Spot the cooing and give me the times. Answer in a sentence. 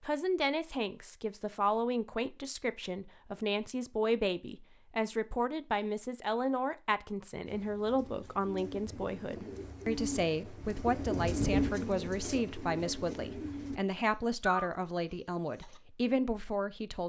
You can hear the cooing from 7.5 to 15.8 s.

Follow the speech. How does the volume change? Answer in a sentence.
The loudness of the speech stays about the same.